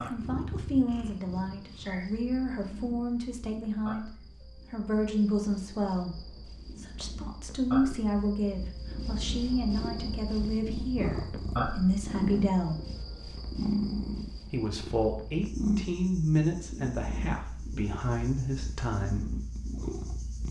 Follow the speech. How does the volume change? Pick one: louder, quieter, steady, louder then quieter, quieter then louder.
steady.